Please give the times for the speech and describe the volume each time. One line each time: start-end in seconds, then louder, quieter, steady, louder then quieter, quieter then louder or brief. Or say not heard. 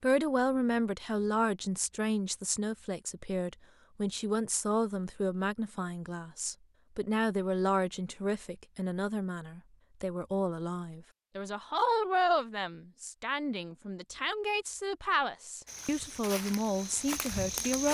0.0-17.8 steady.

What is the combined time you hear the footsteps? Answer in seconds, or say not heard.
2 s.